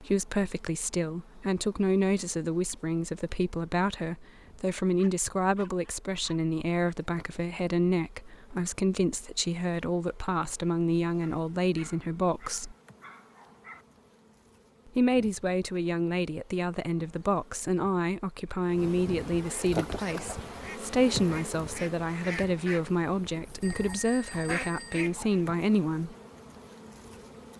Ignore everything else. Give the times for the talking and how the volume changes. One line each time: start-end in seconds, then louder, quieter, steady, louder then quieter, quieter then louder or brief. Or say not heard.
0.0-12.8 steady
14.8-26.1 steady.